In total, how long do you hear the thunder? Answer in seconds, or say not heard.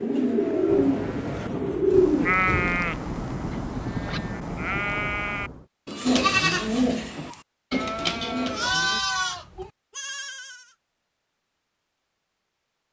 5 s.